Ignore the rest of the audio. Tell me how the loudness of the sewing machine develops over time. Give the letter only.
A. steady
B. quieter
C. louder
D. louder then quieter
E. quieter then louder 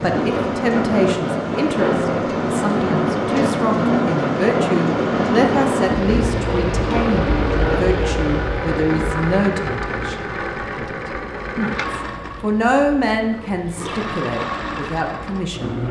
E.